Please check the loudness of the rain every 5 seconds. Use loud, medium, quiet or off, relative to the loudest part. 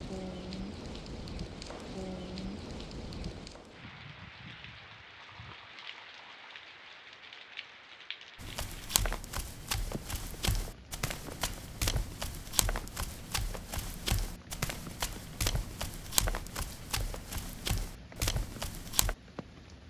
loud, medium, medium, medium.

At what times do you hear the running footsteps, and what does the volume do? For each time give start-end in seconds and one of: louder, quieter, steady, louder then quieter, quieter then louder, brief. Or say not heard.
8.3-19.1 steady.